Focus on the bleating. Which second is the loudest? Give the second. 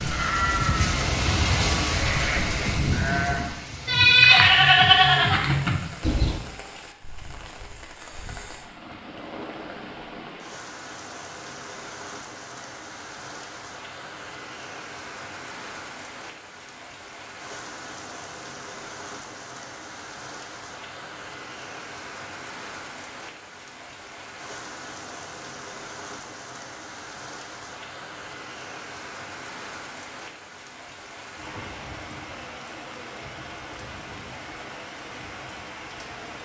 4 s.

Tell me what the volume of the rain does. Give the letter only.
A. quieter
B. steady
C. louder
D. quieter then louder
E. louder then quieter
A.